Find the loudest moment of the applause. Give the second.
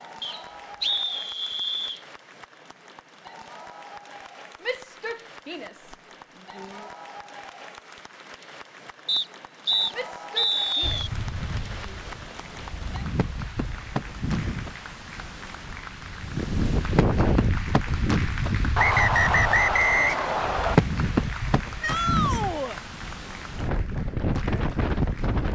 21 s.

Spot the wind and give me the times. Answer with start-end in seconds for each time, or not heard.
10.8-25.4.